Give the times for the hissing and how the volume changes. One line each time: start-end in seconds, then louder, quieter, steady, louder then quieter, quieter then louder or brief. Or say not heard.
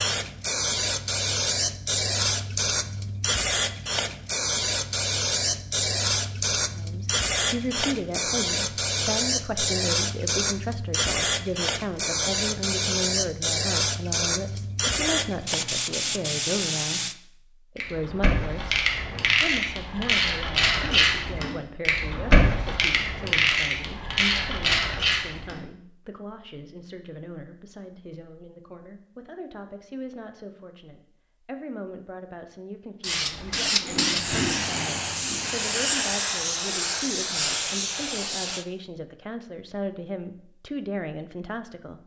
0.0-17.1 steady
33.0-38.6 steady.